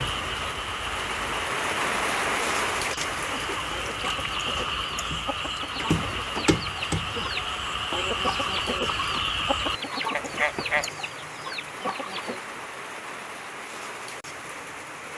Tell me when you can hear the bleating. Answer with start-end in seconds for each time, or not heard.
not heard.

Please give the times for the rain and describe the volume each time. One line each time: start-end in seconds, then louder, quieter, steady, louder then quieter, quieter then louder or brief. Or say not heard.
0.0-15.1 quieter.